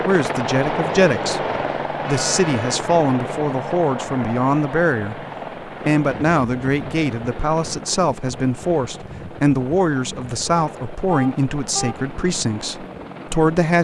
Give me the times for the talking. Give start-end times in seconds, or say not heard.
0.1-13.7.